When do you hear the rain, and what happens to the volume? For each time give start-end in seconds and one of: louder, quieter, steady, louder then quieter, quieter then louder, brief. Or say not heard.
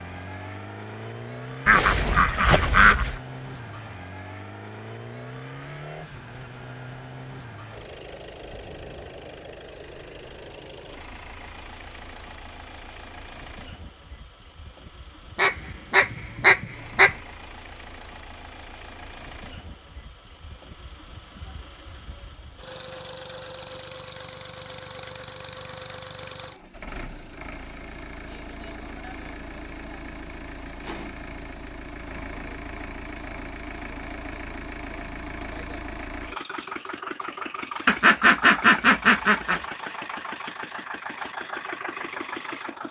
not heard.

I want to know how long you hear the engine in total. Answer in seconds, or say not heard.
43 s.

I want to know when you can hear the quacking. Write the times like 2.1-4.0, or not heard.
1.6-3.2, 15.3-17.1, 37.9-39.6.